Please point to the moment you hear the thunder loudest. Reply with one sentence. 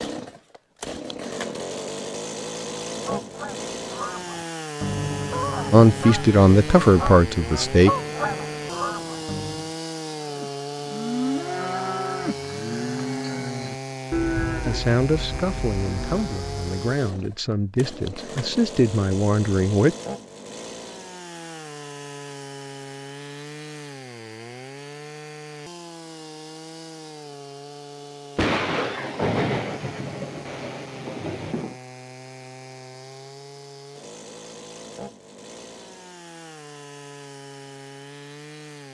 The volume of the thunder peaks at 29 seconds.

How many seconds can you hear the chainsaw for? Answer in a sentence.
You can hear the chainsaw for 39 seconds altogether.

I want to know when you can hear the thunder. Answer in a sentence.
You can hear the thunder from 28.4 to 31.8 s.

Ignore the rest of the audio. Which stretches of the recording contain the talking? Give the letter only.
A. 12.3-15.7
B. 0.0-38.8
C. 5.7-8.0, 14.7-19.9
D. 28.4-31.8
C.